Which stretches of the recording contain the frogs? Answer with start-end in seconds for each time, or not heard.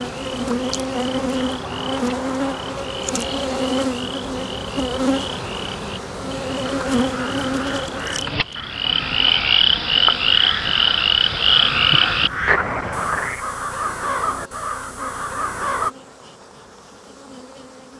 0.0-13.4.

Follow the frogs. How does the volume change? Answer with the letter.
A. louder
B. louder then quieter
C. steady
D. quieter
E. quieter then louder
A.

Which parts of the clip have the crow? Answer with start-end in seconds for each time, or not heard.
6.7-15.9.